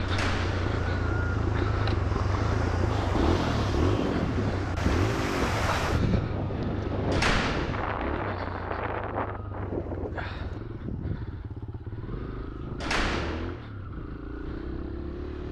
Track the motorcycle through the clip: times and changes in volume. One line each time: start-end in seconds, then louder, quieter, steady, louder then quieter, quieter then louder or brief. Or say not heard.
0.0-15.4 quieter.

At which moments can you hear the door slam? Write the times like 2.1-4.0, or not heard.
0.1-0.7, 7.1-8.0, 12.8-13.7.